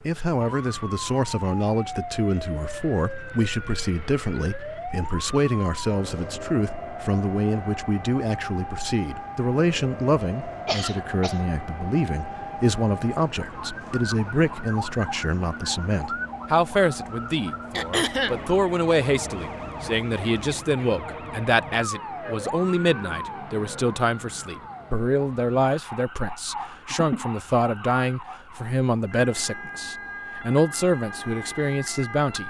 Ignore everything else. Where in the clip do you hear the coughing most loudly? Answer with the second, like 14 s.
18 s.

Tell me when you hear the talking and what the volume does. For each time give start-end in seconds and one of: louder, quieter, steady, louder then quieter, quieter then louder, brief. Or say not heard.
0.1-32.4 steady.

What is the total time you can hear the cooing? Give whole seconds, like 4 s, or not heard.
not heard.